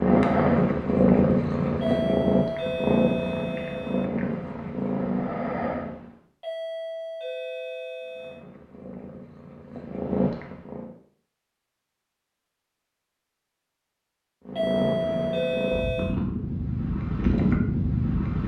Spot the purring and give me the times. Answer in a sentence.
The purring can be heard from 0.0 to 6.2 s, from 8.1 to 10.9 s and from 14.4 to 18.4 s.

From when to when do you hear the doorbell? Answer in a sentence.
You can hear the doorbell from 1.8 to 4.1 s, from 6.4 to 8.4 s and from 14.6 to 16.1 s.